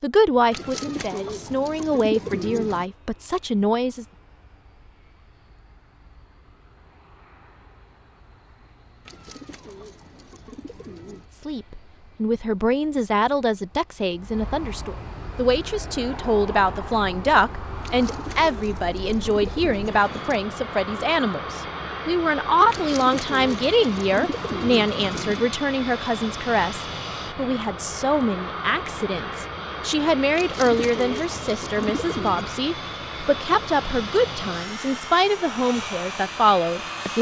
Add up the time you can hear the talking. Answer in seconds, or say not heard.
30 s.